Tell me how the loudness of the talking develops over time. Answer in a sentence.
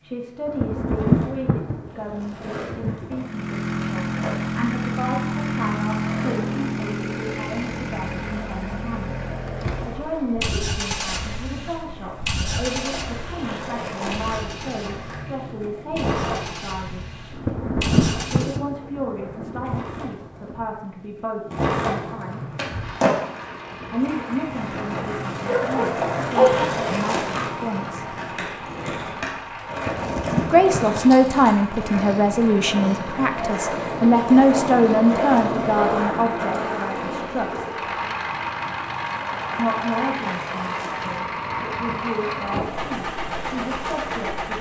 The volume of the talking goes up, then down.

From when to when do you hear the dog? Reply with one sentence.
You can hear the dog from 24.9 to 26.6 s.